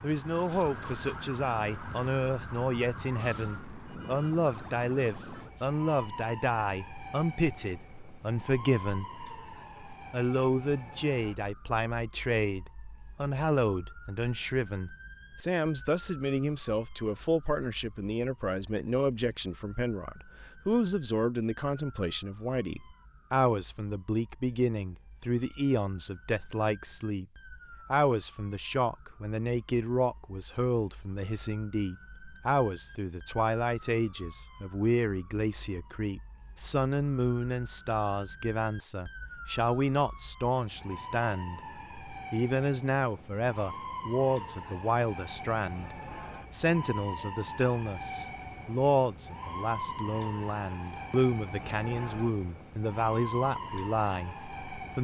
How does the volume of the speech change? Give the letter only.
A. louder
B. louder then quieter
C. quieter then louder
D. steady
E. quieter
D.